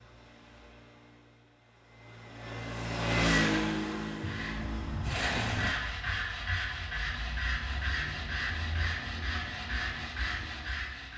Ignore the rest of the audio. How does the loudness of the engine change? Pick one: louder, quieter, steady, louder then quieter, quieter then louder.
louder then quieter.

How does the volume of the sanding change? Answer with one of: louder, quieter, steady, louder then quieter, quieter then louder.
steady.